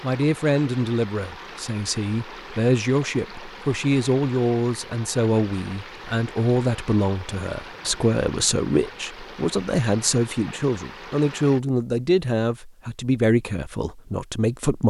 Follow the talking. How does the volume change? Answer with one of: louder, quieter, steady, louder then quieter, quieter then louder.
steady.